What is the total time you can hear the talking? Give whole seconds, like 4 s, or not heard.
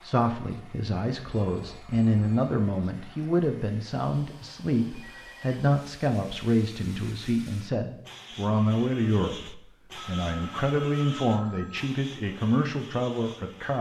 14 s.